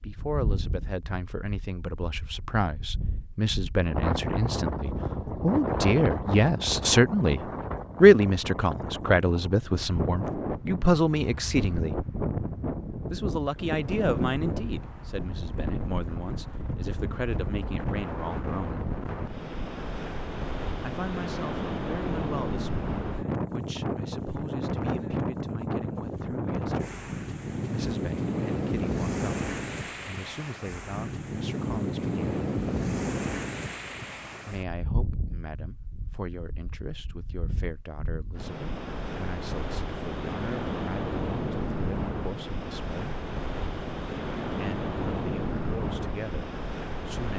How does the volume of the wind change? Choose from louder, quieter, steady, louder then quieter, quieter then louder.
steady.